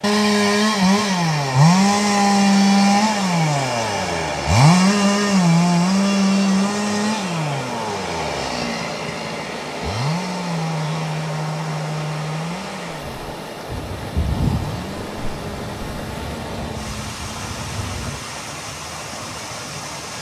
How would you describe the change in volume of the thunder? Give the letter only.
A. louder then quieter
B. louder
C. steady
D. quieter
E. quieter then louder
D.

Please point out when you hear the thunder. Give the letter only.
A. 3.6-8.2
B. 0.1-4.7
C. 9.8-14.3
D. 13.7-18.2
D.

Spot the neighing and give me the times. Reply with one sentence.
The neighing can't be heard in this clip.